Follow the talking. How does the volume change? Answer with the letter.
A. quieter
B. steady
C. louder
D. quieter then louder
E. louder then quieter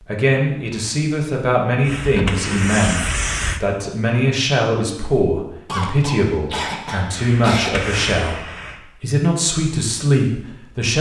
B.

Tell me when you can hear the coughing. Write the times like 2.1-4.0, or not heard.
5.7-7.7.